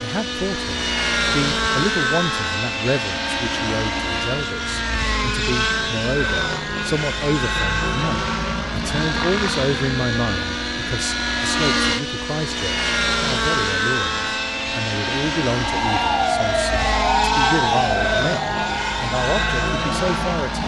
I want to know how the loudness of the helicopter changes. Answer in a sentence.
The volume of the helicopter stays about the same.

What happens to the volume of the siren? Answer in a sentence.
The loudness of the siren goes down.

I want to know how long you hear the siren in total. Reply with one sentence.
You can hear the siren for 5 seconds altogether.